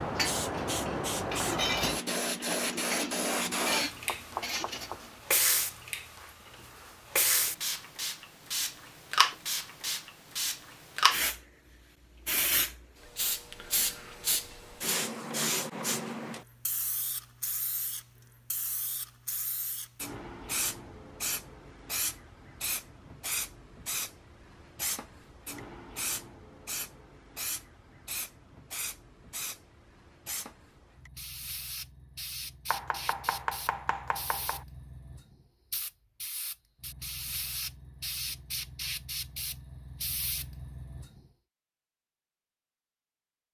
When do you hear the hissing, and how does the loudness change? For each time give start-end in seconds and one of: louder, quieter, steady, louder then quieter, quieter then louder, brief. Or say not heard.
0.0-41.2 quieter.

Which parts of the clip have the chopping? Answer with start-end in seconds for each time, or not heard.
3.8-5.2, 32.7-34.6.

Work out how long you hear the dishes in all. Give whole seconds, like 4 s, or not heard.
5 s.